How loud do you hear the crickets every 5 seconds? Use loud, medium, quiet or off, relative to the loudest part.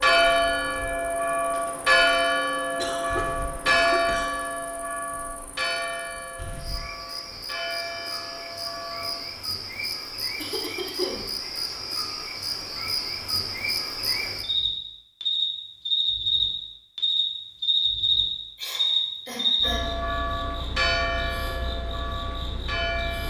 quiet, quiet, medium, loud, quiet.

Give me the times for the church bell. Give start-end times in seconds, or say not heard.
0.0-9.2, 19.6-23.2.